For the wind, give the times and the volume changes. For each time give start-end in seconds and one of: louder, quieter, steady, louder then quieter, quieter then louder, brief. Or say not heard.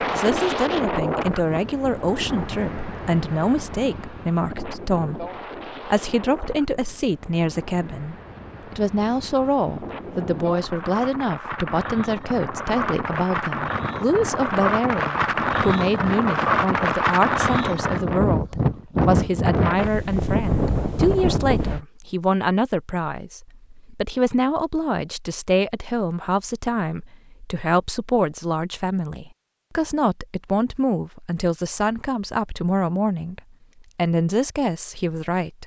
0.0-21.8 quieter then louder.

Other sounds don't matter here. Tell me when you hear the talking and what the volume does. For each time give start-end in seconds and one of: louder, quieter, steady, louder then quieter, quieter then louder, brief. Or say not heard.
0.0-35.6 steady.